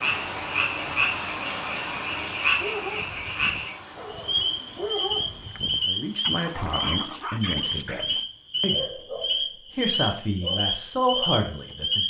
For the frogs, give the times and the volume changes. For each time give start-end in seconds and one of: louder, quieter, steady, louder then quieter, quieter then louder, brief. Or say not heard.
0.0-12.0 steady.